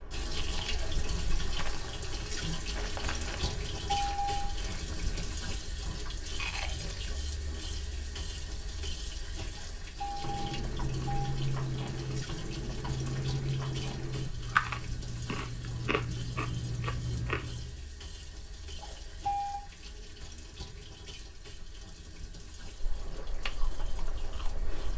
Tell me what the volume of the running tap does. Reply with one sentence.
The loudness of the running tap goes down.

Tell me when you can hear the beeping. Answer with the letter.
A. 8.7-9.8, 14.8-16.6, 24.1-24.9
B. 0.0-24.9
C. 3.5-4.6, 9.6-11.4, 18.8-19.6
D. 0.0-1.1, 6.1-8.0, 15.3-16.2
C.